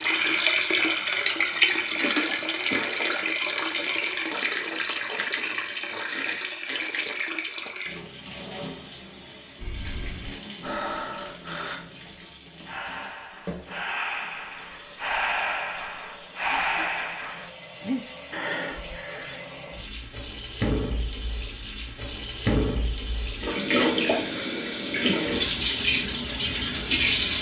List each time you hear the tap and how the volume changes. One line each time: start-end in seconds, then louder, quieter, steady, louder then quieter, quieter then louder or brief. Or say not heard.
0.0-27.3 quieter then louder.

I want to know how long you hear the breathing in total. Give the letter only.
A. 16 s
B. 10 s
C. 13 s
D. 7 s
B.